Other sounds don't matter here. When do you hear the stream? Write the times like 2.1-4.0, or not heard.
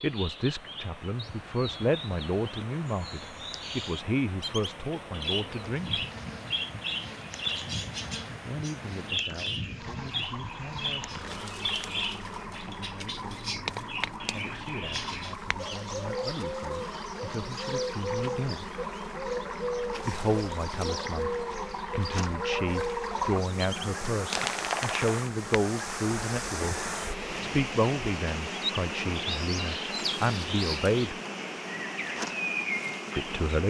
0.0-33.6.